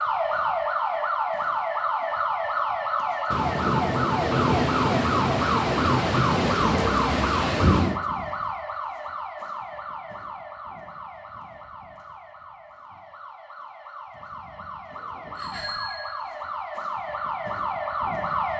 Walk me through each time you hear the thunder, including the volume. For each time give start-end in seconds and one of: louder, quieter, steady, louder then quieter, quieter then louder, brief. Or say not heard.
3.3-8.0 steady.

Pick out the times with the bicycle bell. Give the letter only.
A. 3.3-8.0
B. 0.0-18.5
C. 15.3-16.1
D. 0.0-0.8
C.